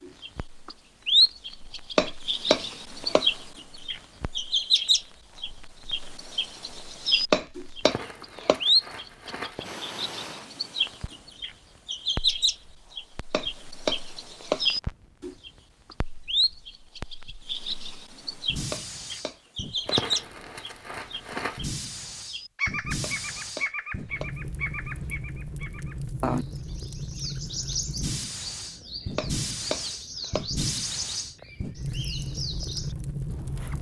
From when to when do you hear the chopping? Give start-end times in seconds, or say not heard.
1.9-3.2, 7.3-8.6, 13.3-14.7, 18.7-20.0, 23.0-24.3, 29.1-30.4.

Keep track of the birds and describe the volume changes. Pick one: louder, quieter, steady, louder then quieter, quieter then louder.
quieter.